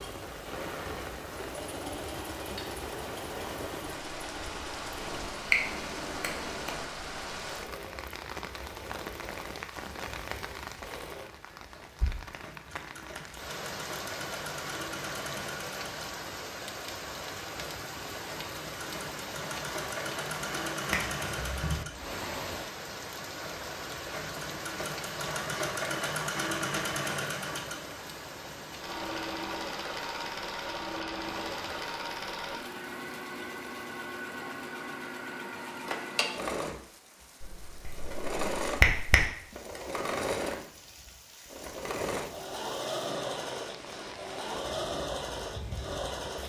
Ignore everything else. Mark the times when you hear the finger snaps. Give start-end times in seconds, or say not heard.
5.0-6.8, 20.9-21.9, 37.4-39.2.